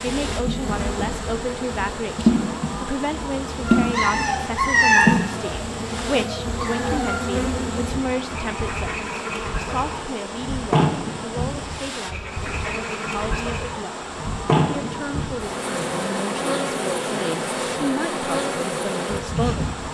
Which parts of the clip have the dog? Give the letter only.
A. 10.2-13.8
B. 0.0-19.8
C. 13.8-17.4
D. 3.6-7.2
D.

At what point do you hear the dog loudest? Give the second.
5 s.